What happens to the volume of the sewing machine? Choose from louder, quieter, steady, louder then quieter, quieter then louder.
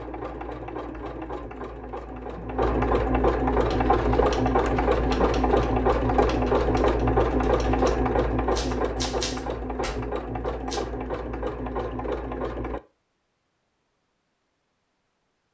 louder then quieter.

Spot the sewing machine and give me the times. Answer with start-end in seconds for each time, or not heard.
0.0-12.8.